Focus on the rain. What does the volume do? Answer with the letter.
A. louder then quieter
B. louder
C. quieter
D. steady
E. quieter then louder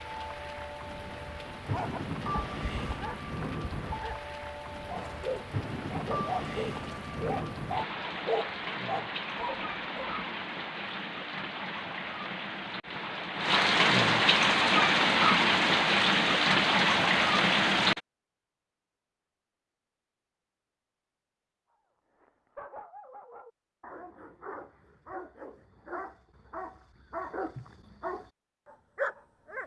B.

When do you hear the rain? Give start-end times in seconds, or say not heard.
0.0-18.0.